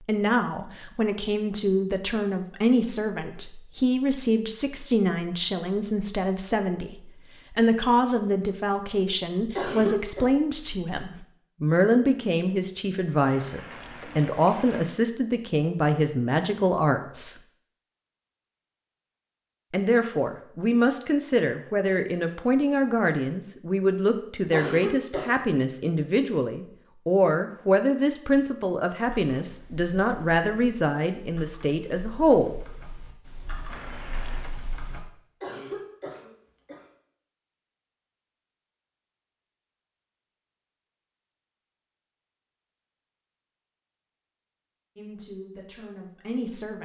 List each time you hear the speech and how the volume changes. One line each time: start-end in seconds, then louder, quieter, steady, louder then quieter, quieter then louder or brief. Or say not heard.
0.0-17.4 steady
19.7-32.5 steady
45.0-46.8 brief.